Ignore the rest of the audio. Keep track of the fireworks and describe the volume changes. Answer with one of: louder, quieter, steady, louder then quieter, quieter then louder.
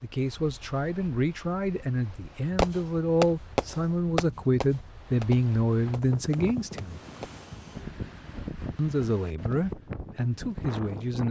quieter then louder.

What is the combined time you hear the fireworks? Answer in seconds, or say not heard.
5 s.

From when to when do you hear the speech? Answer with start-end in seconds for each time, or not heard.
0.0-7.0, 8.8-11.2.